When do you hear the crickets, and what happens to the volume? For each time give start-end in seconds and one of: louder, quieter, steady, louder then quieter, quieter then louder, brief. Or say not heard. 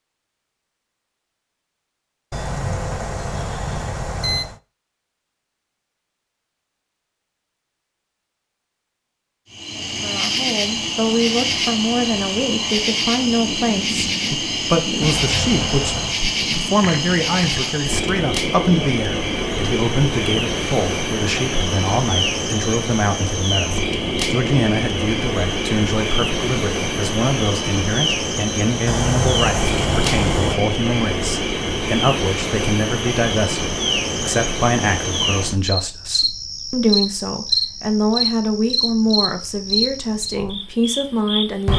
9.5-41.7 steady.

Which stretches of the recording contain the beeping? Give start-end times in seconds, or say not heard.
2.3-4.6, 15.0-16.2, 28.9-30.6.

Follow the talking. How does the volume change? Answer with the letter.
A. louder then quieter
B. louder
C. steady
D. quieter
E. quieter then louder
C.